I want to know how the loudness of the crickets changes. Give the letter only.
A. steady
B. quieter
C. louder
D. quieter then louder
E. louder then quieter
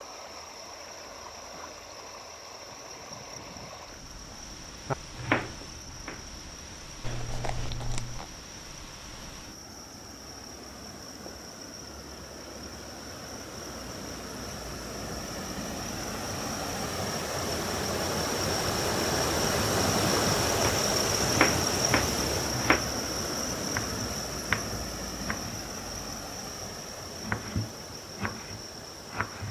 E.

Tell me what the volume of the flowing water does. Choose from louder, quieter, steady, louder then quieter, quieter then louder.
louder then quieter.